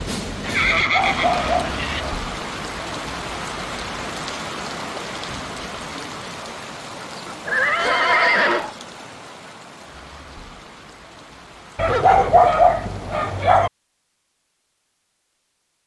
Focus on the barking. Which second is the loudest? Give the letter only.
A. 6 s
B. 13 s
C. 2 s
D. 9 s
B.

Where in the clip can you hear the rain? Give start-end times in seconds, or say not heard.
0.0-13.4.